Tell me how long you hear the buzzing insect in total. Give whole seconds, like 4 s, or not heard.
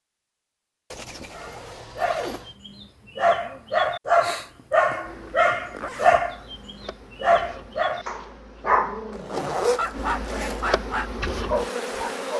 7 s.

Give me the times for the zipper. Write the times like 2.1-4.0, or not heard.
0.9-2.5, 5.7-6.2, 9.1-10.7.